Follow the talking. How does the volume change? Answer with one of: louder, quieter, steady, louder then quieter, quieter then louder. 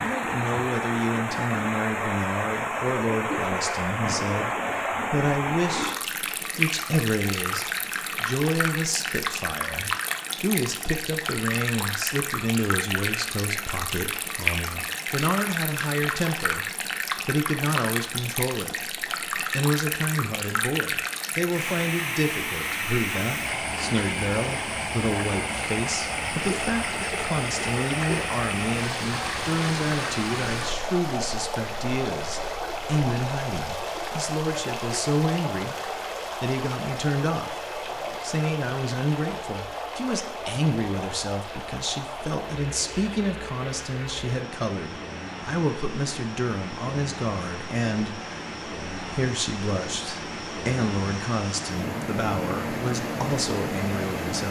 steady.